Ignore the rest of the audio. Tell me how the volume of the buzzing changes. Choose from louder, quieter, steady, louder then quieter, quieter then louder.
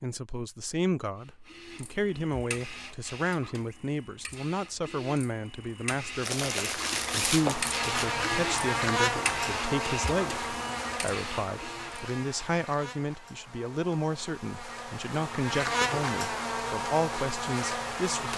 quieter then louder.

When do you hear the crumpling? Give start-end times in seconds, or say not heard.
6.2-8.1.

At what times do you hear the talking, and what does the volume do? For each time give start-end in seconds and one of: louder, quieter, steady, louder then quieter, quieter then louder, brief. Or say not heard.
0.0-18.3 steady.